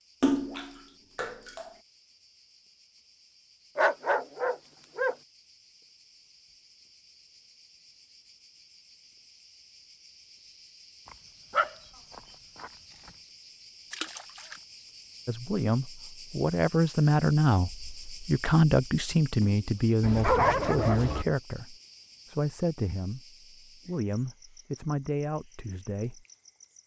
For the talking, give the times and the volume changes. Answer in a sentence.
You can hear the talking from 15.2 to 26.2 s, getting quieter.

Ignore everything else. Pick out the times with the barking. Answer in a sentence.
The barking can be heard from 3.8 to 5.2 s, from 11.1 to 12.7 s and from 20.0 to 21.2 s.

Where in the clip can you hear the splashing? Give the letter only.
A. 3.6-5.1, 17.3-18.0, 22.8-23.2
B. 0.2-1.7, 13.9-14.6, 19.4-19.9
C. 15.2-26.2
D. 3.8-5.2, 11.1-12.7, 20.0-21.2
B.